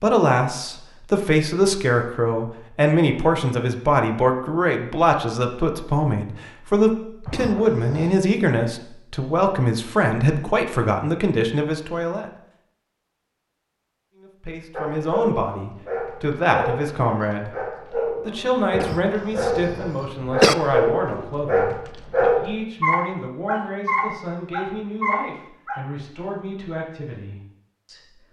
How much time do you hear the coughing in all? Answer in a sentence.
The coughing can be heard for 3 seconds in total.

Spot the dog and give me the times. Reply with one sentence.
You can hear the dog from 14.7 to 25.8 s.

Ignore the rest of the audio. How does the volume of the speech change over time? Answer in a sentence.
The loudness of the speech goes down.